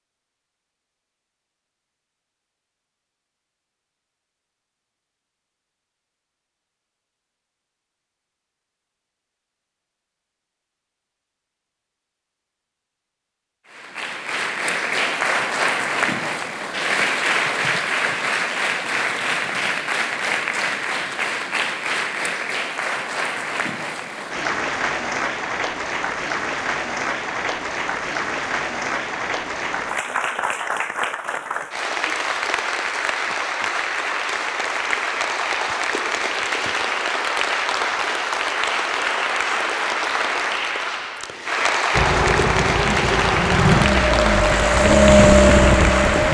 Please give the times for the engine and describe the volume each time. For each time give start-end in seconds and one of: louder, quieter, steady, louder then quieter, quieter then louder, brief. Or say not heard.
41.9-46.2 louder.